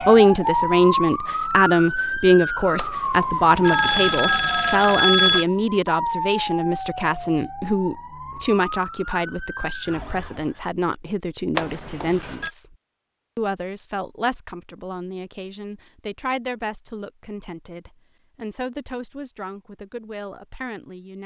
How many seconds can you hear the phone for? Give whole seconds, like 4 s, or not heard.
4 s.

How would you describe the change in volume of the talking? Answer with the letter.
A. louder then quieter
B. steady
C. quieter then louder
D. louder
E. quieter
E.